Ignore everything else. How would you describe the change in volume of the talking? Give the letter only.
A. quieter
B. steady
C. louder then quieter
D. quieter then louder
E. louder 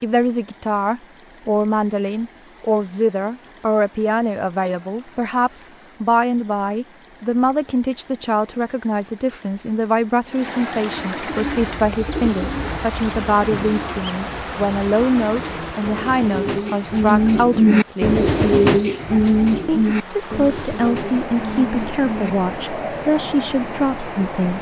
B.